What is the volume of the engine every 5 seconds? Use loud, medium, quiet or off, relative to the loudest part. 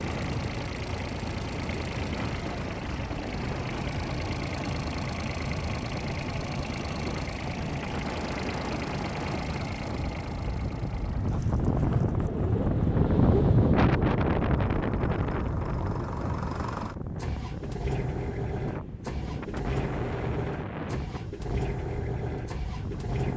loud, loud, medium, loud, loud.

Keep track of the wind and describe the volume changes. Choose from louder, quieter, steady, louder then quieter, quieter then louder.
louder then quieter.